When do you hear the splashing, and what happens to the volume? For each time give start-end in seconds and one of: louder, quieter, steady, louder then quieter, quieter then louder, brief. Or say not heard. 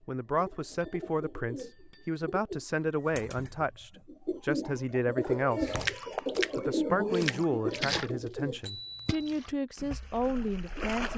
5.2-11.1 quieter.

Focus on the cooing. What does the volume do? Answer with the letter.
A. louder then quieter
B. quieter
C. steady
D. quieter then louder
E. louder
E.